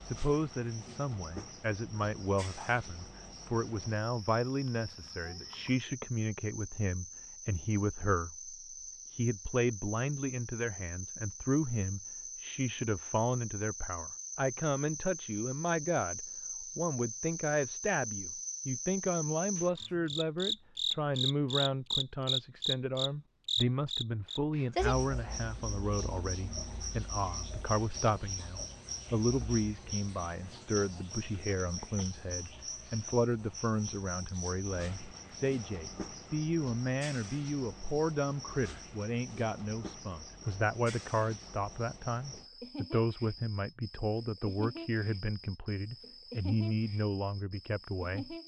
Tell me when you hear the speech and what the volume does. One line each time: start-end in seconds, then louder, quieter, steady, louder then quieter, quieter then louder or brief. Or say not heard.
0.0-48.4 steady.